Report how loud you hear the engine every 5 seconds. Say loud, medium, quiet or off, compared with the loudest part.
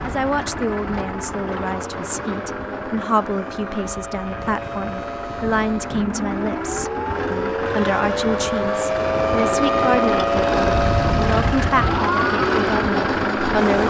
medium, medium, loud.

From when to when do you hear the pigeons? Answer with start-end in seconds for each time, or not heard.
not heard.